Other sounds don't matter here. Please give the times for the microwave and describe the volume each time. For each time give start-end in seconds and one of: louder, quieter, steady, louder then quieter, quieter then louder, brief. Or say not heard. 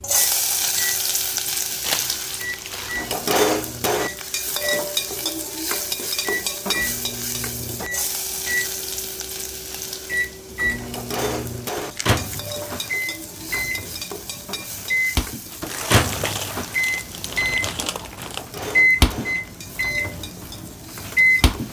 0.0-21.6 louder.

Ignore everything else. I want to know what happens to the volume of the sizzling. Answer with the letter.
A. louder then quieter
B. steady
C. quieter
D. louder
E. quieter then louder
C.